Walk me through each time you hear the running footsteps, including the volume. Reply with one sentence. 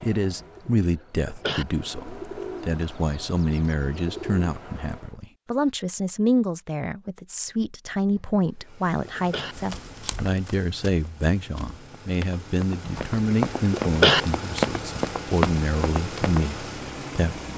The running footsteps can be heard from 9.5 to 16.5 s, getting louder.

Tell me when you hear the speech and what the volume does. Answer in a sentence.
You can hear the speech from 0.0 to 17.5 s, at a steady volume.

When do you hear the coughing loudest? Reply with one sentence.
The volume of the coughing peaks at 14 seconds.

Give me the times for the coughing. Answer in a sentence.
You can hear the coughing from 0.2 to 1.6 s, from 8.2 to 9.6 s and from 12.8 to 14.2 s.